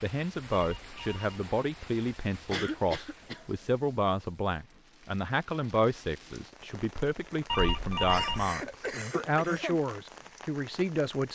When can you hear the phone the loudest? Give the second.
8 s.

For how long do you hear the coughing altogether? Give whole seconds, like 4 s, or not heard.
3 s.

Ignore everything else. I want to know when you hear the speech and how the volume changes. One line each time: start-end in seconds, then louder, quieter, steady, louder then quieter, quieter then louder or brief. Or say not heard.
0.0-11.3 steady.